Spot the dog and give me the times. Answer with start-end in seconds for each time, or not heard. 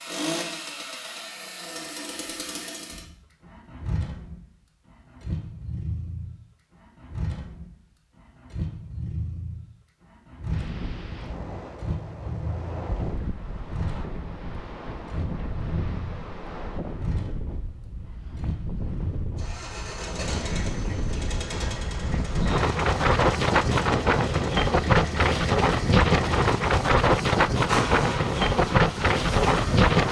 not heard.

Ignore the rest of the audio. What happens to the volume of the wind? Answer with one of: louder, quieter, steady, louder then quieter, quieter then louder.
louder.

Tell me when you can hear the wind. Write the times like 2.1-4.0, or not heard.
10.4-30.0.